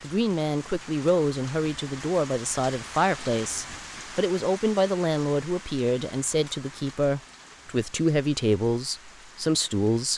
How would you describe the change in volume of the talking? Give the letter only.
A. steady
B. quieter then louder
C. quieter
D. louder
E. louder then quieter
A.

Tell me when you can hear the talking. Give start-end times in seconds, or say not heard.
0.0-10.1.